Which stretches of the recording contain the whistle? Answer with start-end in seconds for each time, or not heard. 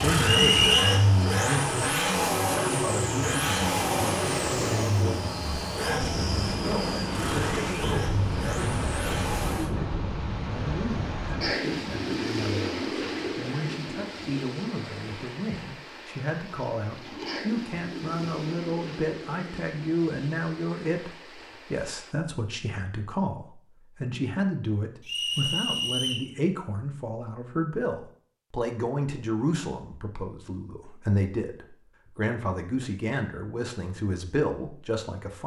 0.2-1.0, 25.1-26.3.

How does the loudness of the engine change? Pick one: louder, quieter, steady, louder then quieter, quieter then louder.
quieter.